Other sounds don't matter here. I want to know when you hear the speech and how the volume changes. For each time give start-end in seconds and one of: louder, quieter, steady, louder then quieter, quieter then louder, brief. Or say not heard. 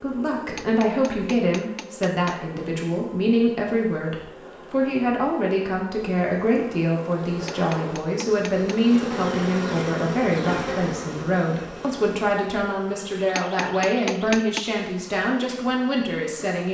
0.0-16.6 steady.